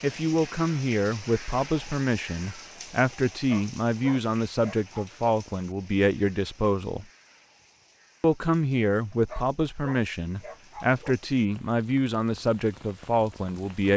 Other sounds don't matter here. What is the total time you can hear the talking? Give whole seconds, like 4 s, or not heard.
13 s.